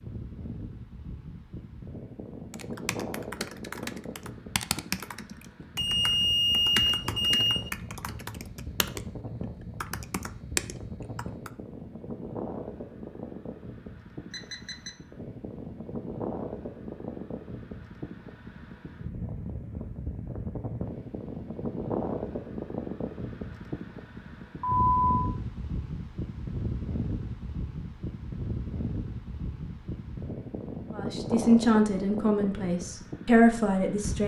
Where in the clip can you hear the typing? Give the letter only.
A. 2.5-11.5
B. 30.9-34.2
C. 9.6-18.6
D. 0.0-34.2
A.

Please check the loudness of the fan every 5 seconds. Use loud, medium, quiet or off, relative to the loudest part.
medium, medium, medium, loud, loud, loud, loud.